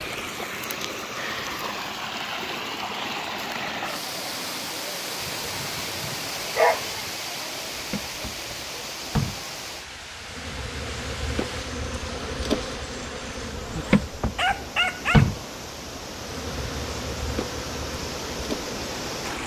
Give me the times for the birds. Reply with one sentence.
The birds can't be heard in this clip.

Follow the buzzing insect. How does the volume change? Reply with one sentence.
The loudness of the buzzing insect goes up, then down.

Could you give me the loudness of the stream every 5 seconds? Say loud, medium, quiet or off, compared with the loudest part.
loud, loud, medium, loud.